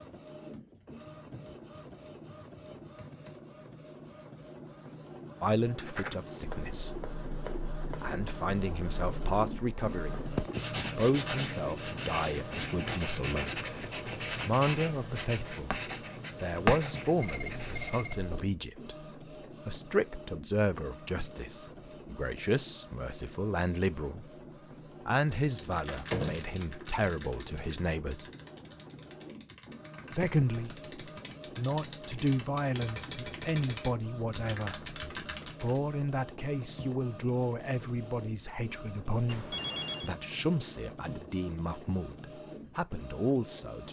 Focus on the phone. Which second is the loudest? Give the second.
40 s.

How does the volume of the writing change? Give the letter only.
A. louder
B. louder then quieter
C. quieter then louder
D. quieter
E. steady
A.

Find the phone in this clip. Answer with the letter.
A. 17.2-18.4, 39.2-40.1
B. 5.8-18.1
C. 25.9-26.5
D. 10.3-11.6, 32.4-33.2
A.